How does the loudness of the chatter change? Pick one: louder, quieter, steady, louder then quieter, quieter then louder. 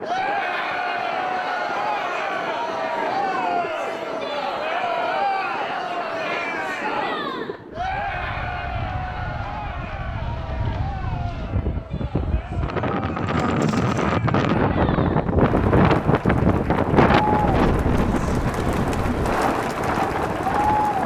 quieter then louder.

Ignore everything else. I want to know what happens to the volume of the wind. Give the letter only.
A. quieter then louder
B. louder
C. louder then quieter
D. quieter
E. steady
B.